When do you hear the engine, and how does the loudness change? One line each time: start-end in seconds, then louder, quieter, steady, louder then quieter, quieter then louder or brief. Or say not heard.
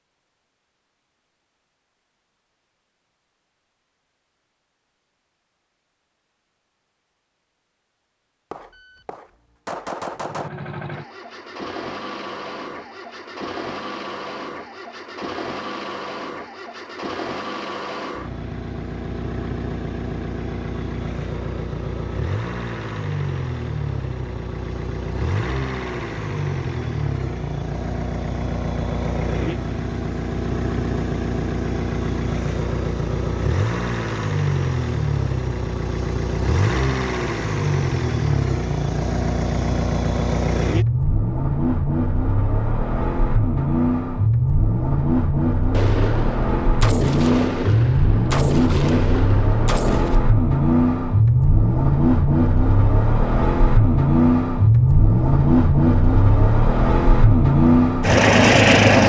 10.2-59.0 louder.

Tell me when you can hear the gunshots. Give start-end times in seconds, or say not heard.
8.5-10.5, 45.7-50.2.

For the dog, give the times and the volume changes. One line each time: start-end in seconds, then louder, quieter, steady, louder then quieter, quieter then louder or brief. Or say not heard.
not heard.